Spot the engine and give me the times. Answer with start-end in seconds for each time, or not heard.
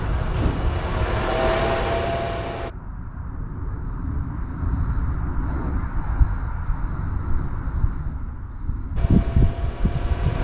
0.0-2.7, 8.9-10.4.